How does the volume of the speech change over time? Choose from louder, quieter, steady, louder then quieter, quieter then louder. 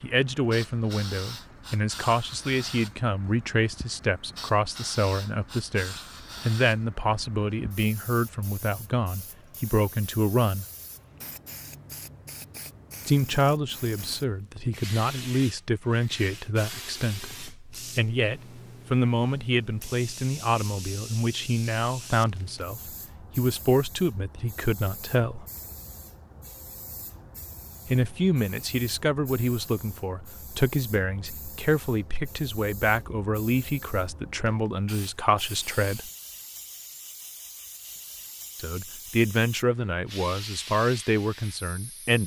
steady.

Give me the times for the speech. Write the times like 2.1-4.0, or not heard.
0.0-10.7, 13.1-25.4, 27.9-36.1, 38.5-42.2.